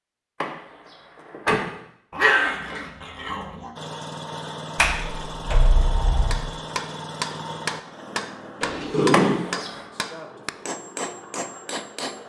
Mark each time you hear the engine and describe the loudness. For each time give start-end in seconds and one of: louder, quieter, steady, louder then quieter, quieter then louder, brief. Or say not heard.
3.8-12.2 quieter.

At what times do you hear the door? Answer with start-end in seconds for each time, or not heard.
0.4-1.7, 4.8-6.4, 9.1-9.8.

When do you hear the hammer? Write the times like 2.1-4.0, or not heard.
6.3-12.2.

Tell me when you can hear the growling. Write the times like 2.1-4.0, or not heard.
2.1-3.7, 8.6-9.4.